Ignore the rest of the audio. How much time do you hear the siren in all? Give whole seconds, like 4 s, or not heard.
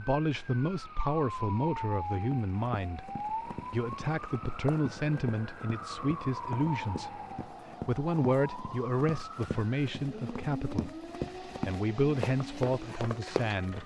14 s.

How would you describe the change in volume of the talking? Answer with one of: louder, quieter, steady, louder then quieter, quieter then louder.
steady.